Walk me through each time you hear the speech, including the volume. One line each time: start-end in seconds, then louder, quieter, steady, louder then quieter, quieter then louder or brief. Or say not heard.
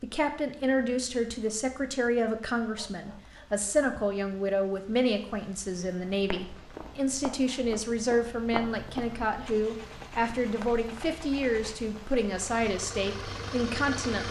0.0-14.2 steady.